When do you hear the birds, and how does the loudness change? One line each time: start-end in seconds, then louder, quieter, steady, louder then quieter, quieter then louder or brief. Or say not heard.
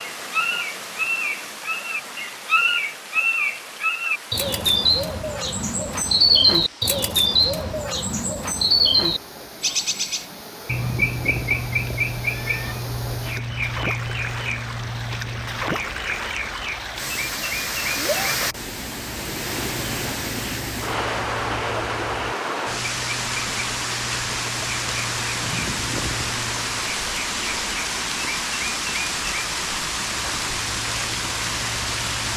0.0-32.3 quieter.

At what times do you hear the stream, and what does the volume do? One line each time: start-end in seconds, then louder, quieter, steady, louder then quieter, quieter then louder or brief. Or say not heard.
0.0-32.3 louder.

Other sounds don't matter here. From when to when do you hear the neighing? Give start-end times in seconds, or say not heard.
10.7-12.8, 25.4-26.4.